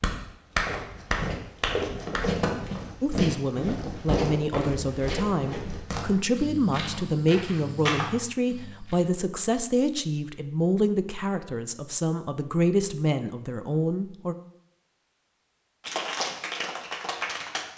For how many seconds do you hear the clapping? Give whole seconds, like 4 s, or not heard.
4 s.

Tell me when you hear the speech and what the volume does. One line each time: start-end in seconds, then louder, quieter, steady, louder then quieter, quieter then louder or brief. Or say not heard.
3.0-14.3 steady.